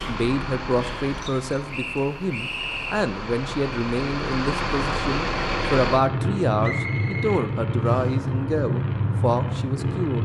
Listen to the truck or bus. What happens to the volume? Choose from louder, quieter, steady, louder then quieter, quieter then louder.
louder.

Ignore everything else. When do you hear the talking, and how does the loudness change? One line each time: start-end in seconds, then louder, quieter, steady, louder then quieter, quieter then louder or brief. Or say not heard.
0.1-10.1 steady.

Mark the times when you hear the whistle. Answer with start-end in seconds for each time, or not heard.
1.7-3.1, 6.6-8.2.